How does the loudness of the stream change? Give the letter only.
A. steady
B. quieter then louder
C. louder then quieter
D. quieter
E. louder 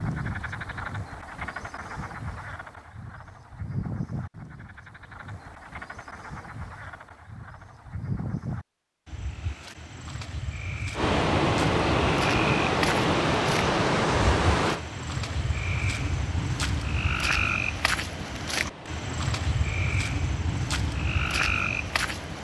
D.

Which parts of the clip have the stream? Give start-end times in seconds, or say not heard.
10.9-22.3.